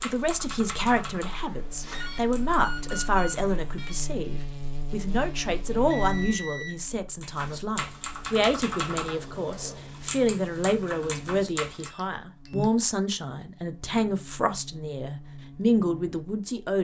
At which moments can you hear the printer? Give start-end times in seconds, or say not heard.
not heard.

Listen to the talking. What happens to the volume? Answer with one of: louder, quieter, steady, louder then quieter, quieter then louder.
steady.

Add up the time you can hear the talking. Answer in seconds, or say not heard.
17 s.